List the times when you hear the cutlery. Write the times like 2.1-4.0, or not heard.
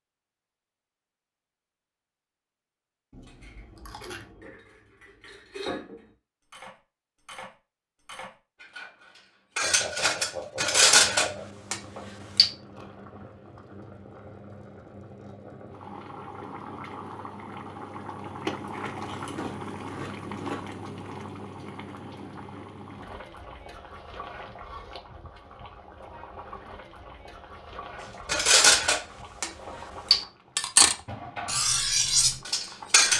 3.2-12.5, 28.2-33.1.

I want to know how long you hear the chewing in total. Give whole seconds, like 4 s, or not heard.
3 s.